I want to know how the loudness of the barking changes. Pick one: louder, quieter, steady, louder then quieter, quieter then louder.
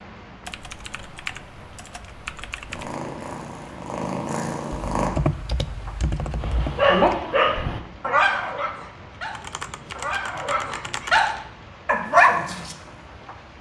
quieter then louder.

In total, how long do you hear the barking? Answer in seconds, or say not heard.
6 s.